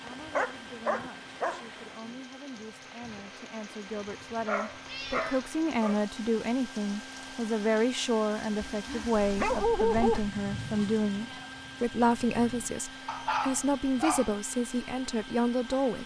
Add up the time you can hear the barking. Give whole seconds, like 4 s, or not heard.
6 s.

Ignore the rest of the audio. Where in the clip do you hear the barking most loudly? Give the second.
10 s.